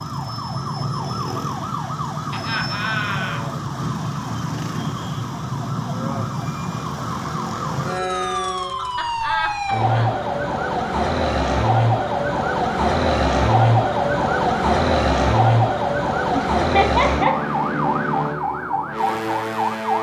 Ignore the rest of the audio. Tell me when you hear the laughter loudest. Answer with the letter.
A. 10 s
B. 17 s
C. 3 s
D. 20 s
B.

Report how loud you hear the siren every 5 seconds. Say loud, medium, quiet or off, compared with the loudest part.
medium, medium, loud, loud.